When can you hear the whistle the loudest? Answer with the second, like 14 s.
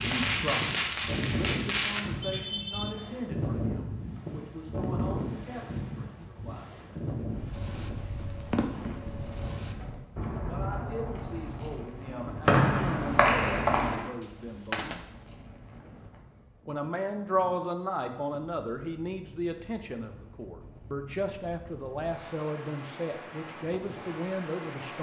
13 s.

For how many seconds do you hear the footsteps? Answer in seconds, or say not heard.
not heard.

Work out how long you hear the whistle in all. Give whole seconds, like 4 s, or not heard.
2 s.